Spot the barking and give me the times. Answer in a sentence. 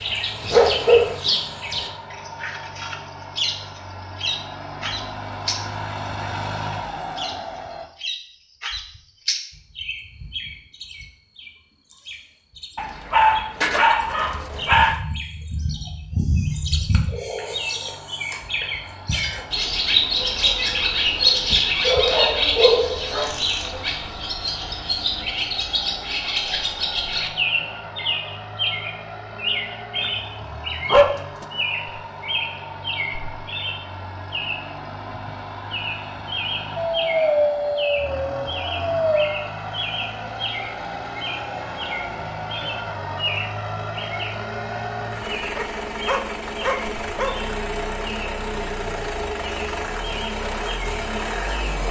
The barking can be heard from 0.5 to 1.1 s, from 12.8 to 15.0 s, from 21.5 to 23.3 s, from 29.9 to 31.4 s, from 36.8 to 39.4 s and from 45.5 to 47.4 s.